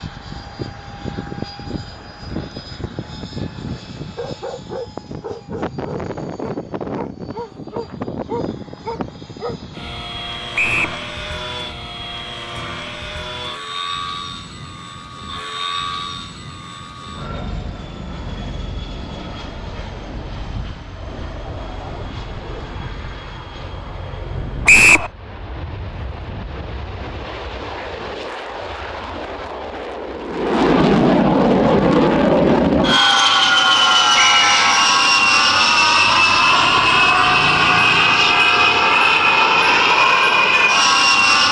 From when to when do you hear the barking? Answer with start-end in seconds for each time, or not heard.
4.2-9.6.